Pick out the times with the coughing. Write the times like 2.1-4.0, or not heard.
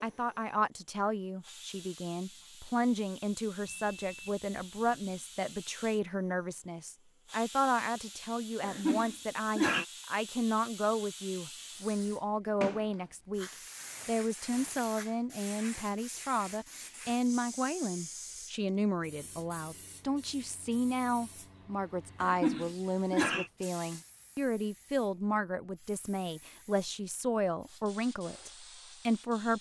8.6-9.8, 22.2-23.5.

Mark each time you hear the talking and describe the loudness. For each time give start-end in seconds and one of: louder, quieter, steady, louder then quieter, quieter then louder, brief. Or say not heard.
0.0-29.5 steady.